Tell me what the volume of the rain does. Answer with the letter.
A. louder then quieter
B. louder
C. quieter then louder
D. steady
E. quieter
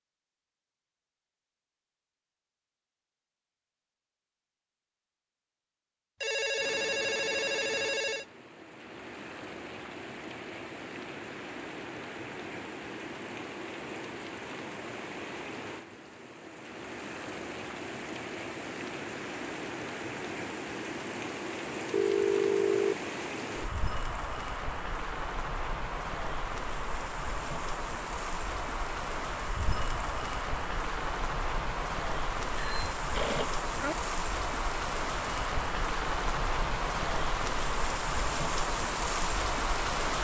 B.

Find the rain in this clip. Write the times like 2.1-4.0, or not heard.
6.5-40.1.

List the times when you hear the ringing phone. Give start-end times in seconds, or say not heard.
6.2-8.2, 21.9-22.9, 32.5-34.0.